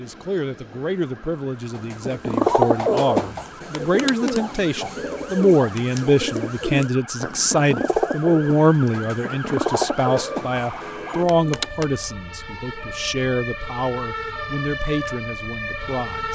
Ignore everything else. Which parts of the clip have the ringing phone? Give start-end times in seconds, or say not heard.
3.7-4.3, 11.2-11.9.